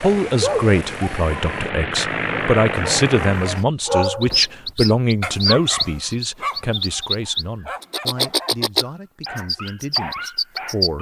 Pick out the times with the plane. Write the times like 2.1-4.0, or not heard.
0.0-3.6.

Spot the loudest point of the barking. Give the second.
4 s.